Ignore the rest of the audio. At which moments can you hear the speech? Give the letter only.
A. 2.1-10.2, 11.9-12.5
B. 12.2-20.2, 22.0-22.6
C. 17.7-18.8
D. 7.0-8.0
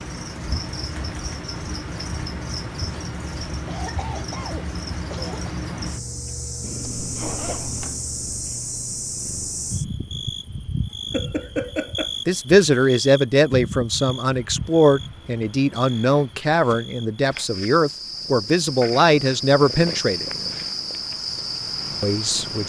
B.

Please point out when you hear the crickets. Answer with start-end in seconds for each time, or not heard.
0.0-22.6.